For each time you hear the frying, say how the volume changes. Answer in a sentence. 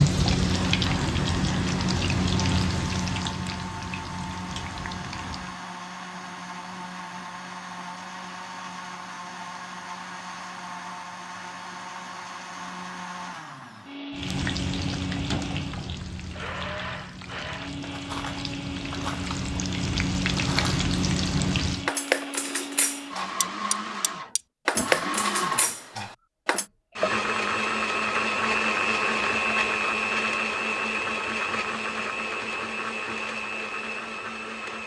You can hear the frying from 0.0 to 5.6 s, getting quieter; and from 14.1 to 21.9 s, getting quieter then louder.